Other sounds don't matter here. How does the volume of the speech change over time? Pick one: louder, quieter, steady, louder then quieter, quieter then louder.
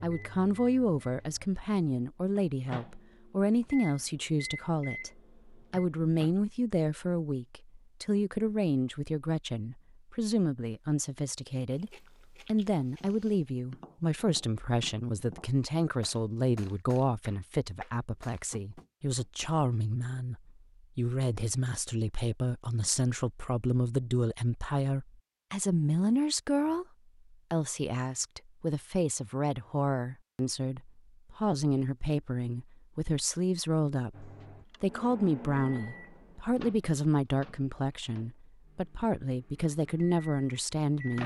steady.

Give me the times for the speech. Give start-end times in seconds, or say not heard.
0.0-41.2.